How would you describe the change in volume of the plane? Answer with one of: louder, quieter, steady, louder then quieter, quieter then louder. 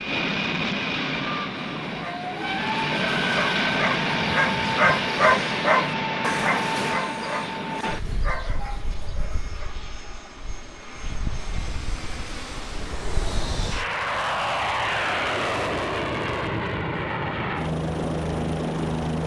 quieter then louder.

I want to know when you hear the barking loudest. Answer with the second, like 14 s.
5 s.